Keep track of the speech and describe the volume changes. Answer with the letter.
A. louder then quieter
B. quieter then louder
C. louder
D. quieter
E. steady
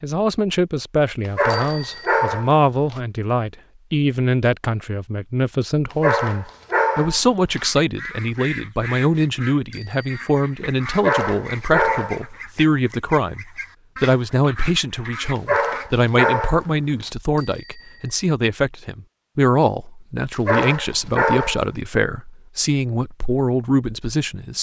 E.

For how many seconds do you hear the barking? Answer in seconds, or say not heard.
8 s.